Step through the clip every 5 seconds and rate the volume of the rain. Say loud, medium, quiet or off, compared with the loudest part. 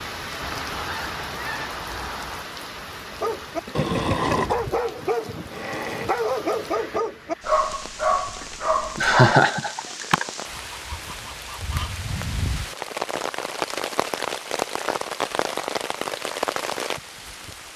medium, medium, loud, loud.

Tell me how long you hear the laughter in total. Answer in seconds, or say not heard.
2 s.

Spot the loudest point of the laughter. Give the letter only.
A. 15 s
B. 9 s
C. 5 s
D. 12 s
B.